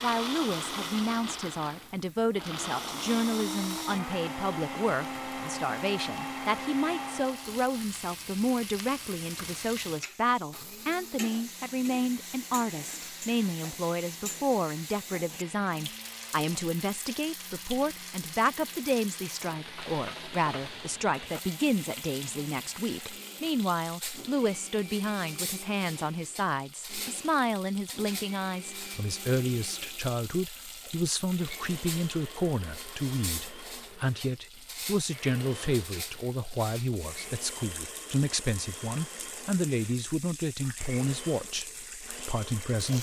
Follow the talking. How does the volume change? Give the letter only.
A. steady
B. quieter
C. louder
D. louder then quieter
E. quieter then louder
A.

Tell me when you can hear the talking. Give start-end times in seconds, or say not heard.
0.0-42.9.